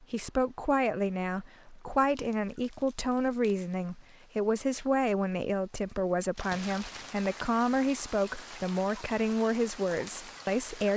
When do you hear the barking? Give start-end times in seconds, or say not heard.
not heard.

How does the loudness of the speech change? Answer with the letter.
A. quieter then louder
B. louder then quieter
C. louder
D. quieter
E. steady
E.